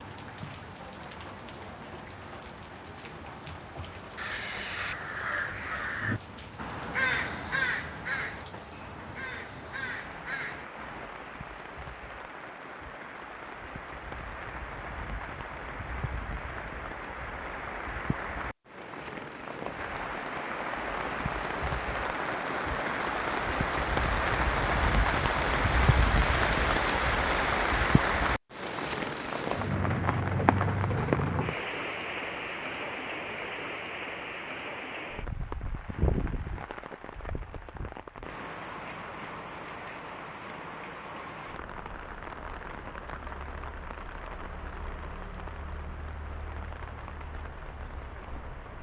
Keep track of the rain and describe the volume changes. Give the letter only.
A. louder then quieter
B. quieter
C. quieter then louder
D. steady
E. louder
A.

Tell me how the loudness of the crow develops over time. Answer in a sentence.
The loudness of the crow goes up, then down.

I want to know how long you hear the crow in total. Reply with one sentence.
You can hear the crow for 8 seconds altogether.